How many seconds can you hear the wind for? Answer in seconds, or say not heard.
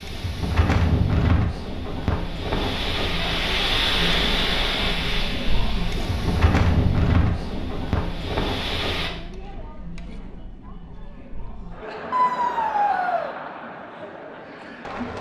9 s.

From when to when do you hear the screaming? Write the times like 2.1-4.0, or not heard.
12.1-13.3.